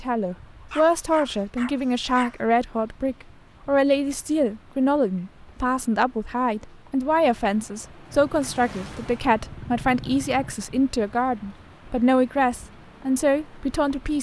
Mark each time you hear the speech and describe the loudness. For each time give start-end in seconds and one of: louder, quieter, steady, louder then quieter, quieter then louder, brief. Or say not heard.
0.0-14.1 steady.